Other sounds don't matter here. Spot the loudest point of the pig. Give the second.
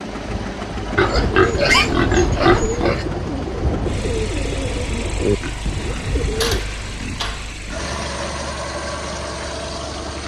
2 s.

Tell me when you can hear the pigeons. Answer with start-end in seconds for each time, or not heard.
1.1-6.6.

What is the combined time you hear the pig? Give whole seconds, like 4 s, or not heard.
5 s.